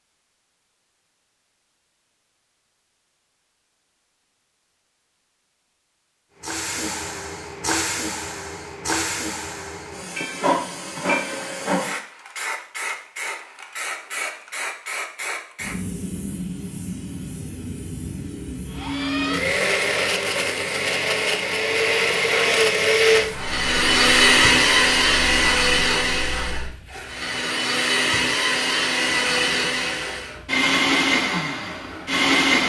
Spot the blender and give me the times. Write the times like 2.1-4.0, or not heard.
18.6-32.6.